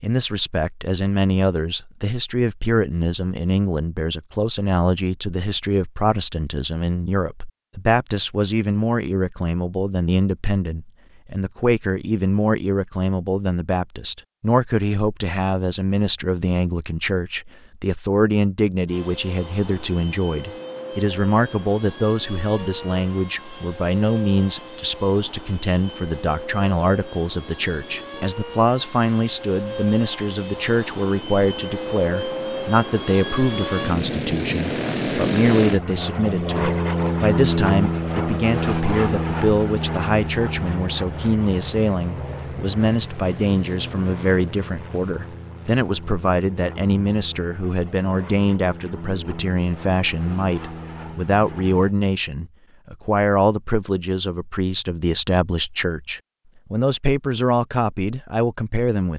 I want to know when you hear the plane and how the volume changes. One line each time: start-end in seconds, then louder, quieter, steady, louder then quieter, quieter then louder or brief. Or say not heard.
18.9-52.0 louder then quieter.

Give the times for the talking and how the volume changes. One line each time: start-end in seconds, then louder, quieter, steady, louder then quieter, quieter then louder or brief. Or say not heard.
0.0-59.1 steady.